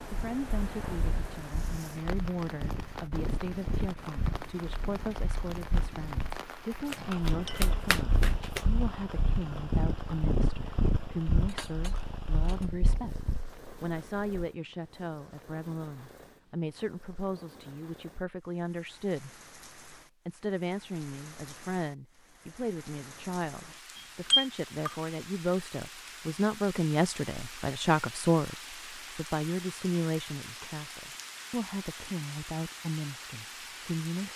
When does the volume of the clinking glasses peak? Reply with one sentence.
The volume of the clinking glasses peaks at 24 seconds.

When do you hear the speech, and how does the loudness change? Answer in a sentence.
The speech can be heard from 0.1 to 19.3 s, at a steady volume; and from 20.2 to 34.3 s, getting louder then quieter.